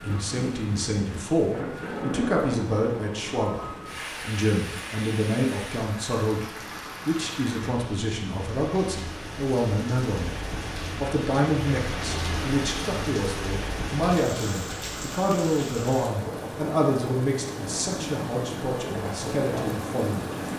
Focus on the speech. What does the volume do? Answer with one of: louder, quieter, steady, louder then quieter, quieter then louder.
steady.